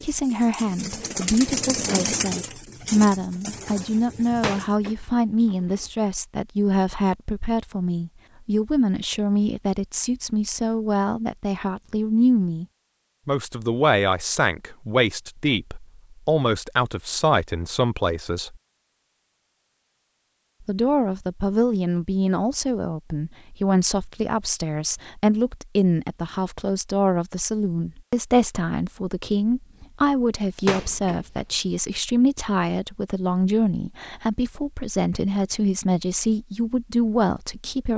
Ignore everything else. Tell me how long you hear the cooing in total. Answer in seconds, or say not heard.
5 s.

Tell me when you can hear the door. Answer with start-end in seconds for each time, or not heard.
4.2-5.9, 30.6-31.3.